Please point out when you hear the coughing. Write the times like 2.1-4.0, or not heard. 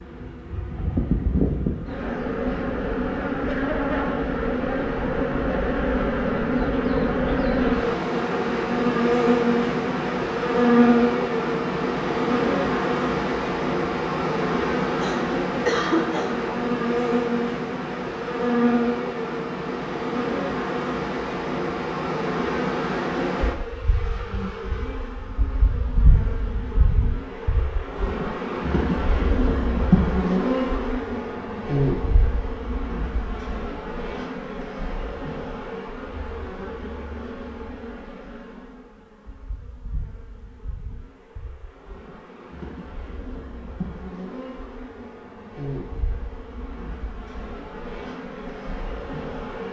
14.9-16.5.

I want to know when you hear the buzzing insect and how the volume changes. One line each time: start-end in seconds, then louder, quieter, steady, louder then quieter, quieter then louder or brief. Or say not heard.
0.0-49.6 quieter.